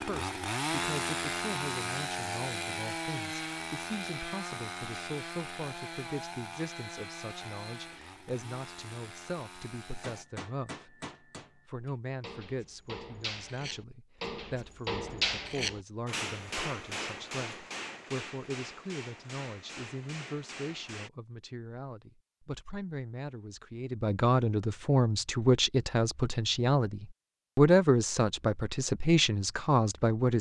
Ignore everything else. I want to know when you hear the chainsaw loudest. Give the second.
1 s.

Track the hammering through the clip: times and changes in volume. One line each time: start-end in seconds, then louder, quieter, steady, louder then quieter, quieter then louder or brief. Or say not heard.
10.0-21.1 louder then quieter.